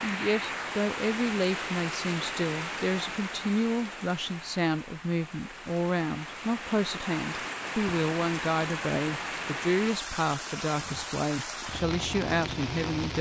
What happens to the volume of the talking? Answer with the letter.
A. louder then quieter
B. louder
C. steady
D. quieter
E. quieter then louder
C.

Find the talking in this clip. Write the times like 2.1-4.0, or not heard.
0.0-13.1.